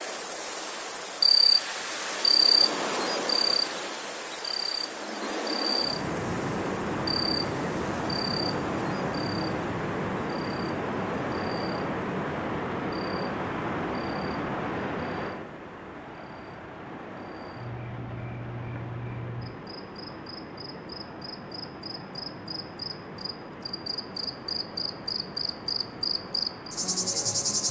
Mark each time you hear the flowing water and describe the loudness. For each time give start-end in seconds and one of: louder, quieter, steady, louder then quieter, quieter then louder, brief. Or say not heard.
5.8-27.6 quieter.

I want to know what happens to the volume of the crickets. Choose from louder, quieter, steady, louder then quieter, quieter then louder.
quieter then louder.